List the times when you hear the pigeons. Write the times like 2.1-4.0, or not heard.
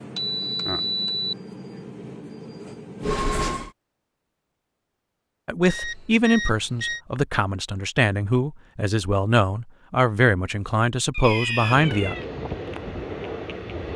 not heard.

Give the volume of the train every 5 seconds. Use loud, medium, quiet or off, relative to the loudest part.
loud, off, loud.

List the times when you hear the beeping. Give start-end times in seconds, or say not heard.
0.1-1.3, 5.7-7.0, 11.1-12.2.